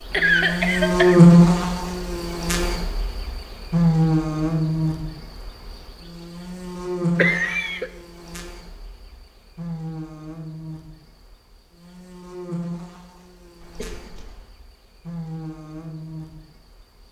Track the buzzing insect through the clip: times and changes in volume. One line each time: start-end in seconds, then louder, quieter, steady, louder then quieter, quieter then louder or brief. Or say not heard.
0.0-17.0 quieter.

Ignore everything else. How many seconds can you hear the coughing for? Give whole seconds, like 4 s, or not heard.
3 s.